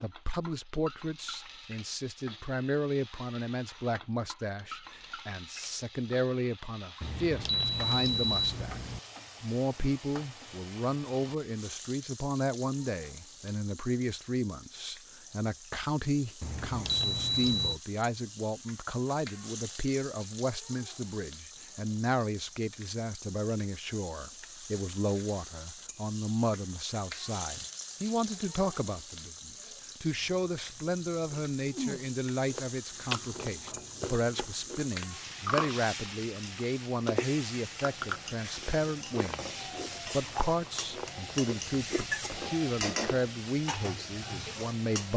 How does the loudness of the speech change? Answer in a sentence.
The volume of the speech stays about the same.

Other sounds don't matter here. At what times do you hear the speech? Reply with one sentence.
The speech can be heard from 0.0 to 8.8 s and from 9.4 to 45.1 s.